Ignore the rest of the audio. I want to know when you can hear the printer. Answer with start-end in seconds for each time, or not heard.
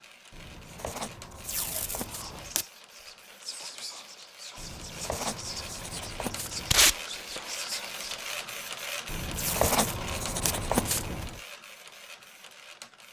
0.0-13.0.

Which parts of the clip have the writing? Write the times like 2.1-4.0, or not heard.
0.3-2.6, 4.5-6.9, 9.1-11.4.